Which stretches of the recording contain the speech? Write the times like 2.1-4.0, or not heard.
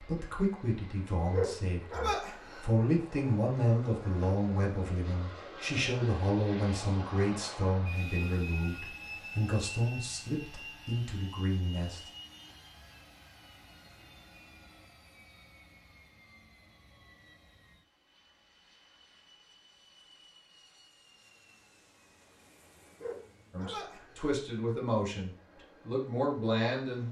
0.0-12.0, 23.5-27.0.